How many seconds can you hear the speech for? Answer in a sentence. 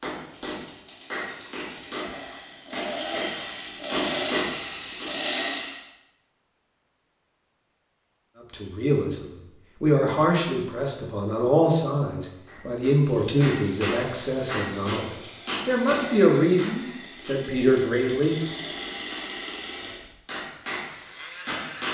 You can hear the speech for 10 seconds altogether.